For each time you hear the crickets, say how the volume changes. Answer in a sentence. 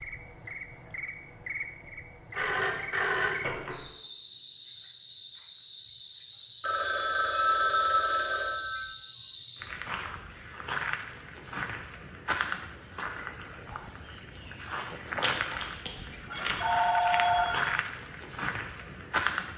You can hear the crickets from 0.0 to 19.5 s, getting louder.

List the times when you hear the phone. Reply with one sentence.
You can hear the phone from 2.3 to 3.8 s, from 6.6 to 8.9 s and from 15.2 to 17.7 s.